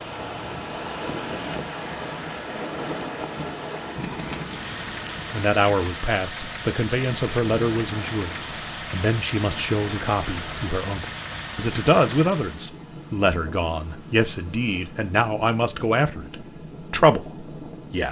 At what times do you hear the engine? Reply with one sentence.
The engine can be heard from 0.0 to 12.7 s.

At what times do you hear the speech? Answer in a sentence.
You can hear the speech from 5.3 to 18.0 s.